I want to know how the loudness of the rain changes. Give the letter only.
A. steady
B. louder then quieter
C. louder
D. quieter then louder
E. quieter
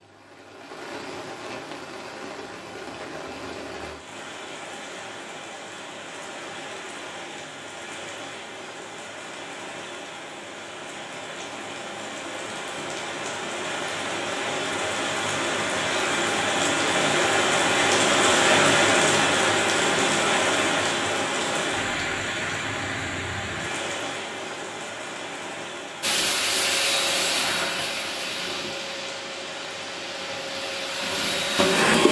B.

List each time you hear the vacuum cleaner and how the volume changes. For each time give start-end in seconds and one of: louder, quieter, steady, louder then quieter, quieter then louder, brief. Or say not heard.
26.0-32.0 quieter then louder.